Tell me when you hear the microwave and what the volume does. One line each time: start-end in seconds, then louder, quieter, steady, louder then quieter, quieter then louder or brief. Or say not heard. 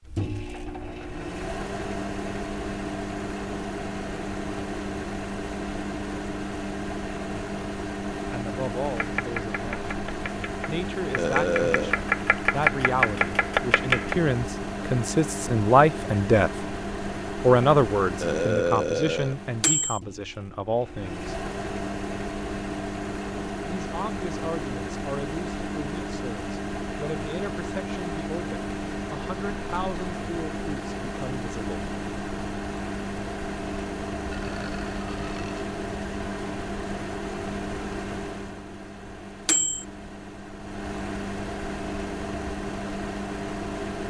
0.0-44.0 steady.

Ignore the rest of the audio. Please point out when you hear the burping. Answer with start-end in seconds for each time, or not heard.
11.2-11.9, 18.2-19.4, 34.3-35.8.